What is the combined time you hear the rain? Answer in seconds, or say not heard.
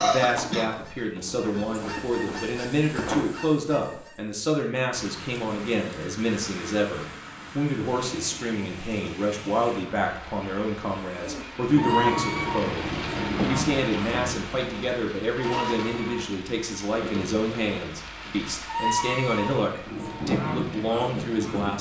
17 s.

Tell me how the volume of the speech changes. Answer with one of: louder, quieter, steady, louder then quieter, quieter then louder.
steady.